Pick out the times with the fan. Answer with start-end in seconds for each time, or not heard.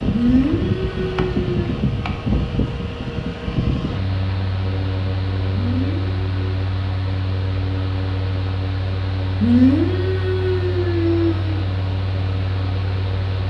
0.0-13.4.